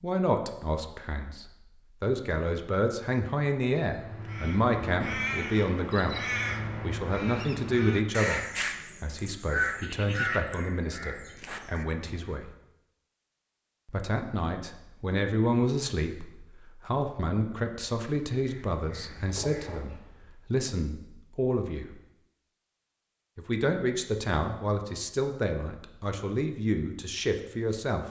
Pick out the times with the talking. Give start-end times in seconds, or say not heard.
0.0-8.4, 9.0-12.5, 13.8-22.0, 23.4-28.0.